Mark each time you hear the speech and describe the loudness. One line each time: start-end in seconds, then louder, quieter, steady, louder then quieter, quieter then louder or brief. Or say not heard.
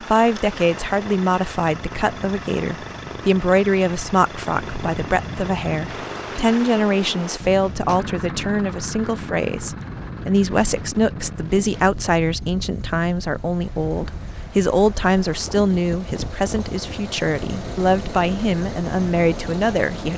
0.0-20.1 steady.